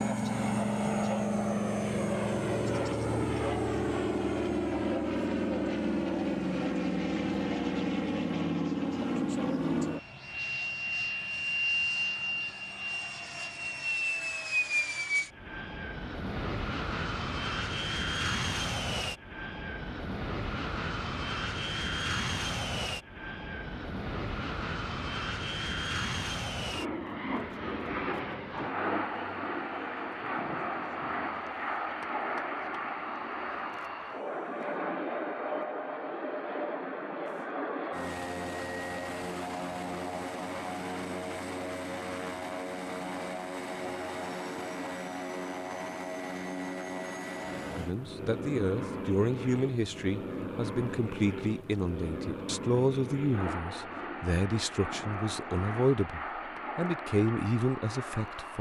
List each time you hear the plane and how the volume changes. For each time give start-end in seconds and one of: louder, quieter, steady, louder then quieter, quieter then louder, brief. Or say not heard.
0.0-58.5 quieter.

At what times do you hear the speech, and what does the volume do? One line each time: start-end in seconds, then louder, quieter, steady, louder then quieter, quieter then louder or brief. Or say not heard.
47.8-58.5 steady.